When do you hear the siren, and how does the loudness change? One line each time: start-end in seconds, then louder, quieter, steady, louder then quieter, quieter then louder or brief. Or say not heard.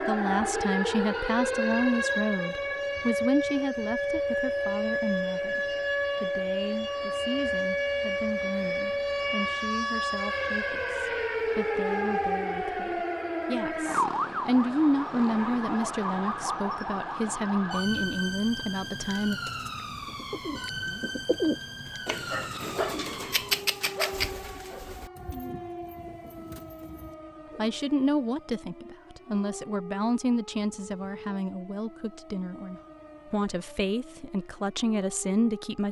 0.0-35.8 quieter.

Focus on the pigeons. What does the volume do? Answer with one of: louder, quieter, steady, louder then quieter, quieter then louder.
louder then quieter.